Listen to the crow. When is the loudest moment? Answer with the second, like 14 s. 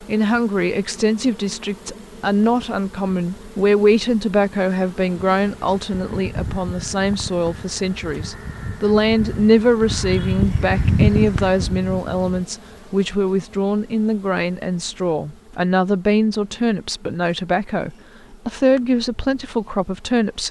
11 s.